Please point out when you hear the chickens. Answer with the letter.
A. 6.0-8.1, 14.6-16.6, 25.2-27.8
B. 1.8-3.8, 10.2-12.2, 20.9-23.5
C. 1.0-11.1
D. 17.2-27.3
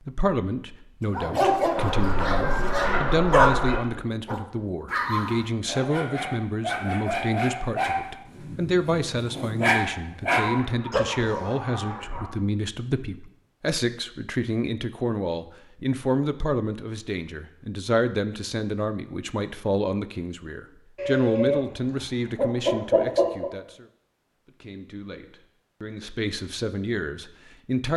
B.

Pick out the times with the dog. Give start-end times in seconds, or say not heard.
1.0-11.1.